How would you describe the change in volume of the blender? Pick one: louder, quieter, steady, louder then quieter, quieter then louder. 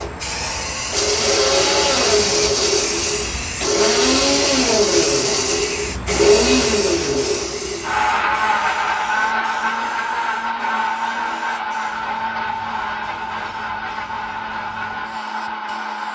quieter.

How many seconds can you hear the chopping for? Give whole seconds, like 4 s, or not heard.
not heard.